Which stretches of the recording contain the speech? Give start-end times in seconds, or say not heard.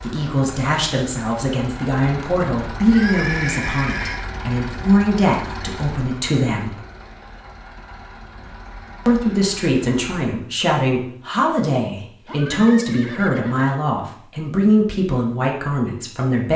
0.0-6.7, 9.1-16.5.